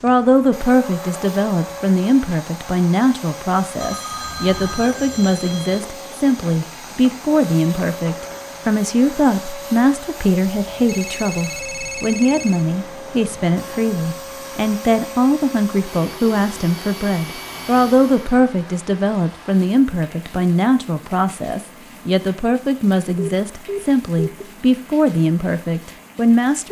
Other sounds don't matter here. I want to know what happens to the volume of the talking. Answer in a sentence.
The loudness of the talking stays about the same.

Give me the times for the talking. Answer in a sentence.
The talking can be heard from 0.0 to 26.6 s.